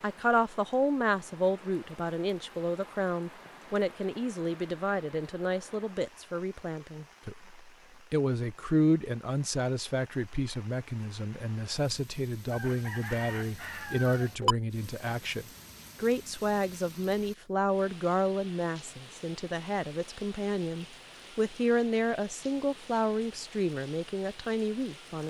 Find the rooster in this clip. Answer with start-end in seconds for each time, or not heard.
12.5-14.6.